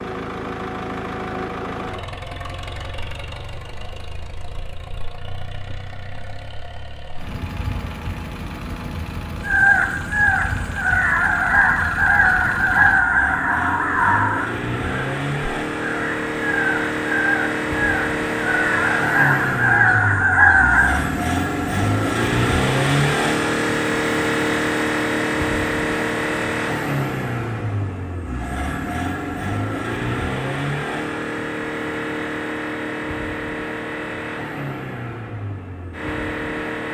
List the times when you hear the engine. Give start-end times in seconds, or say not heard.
0.0-36.8.